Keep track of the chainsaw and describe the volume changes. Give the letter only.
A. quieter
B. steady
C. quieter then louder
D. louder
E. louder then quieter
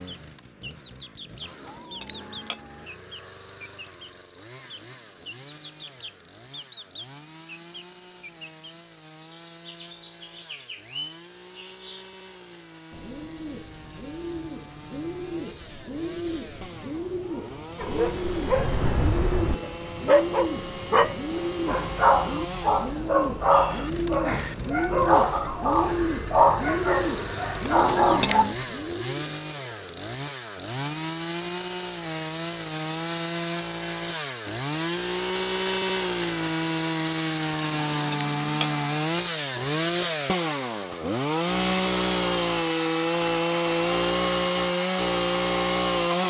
D.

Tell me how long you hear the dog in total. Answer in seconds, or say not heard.
11 s.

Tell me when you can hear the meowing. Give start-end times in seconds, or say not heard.
1.4-2.9, 27.6-28.6, 37.5-39.0.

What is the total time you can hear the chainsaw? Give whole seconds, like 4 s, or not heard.
46 s.